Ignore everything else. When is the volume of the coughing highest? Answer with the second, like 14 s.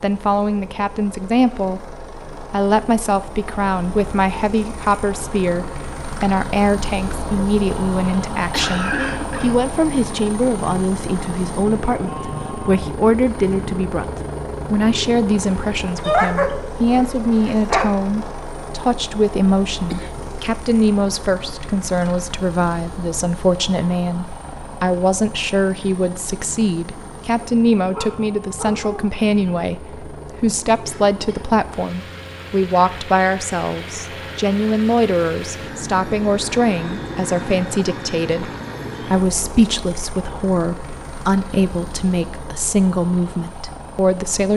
9 s.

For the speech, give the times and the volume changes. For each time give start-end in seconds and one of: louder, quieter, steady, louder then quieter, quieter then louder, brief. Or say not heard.
0.0-1.9 brief
2.5-38.5 steady
39.1-44.5 steady.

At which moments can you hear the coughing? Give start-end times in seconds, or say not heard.
8.3-9.6, 19.9-20.3, 30.8-31.4.